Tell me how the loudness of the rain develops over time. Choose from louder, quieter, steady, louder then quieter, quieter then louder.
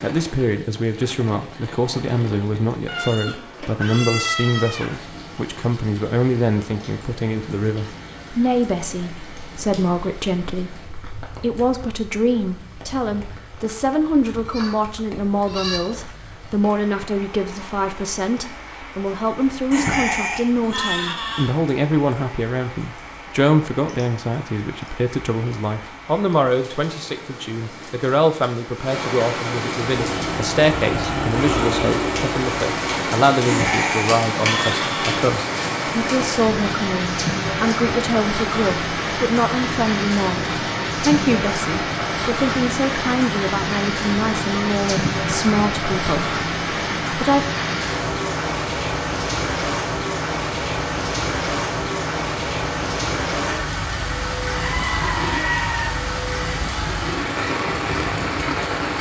louder.